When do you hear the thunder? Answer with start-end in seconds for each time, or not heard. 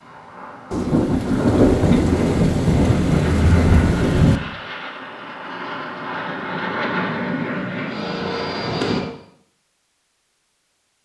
0.7-4.4.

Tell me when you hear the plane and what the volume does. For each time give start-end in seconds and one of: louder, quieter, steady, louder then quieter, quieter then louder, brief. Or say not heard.
0.0-9.1 louder.